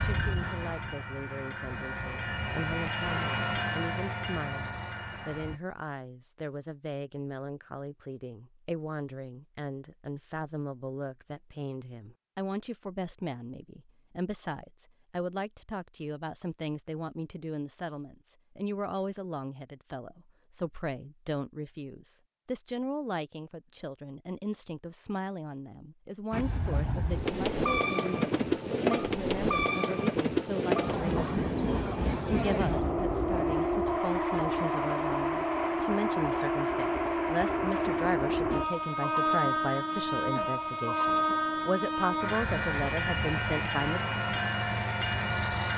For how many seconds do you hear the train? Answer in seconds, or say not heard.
25 s.